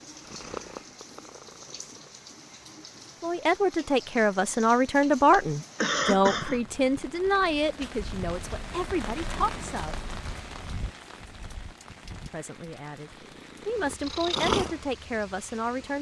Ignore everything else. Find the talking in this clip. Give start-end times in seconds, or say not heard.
3.2-9.9, 12.3-15.9.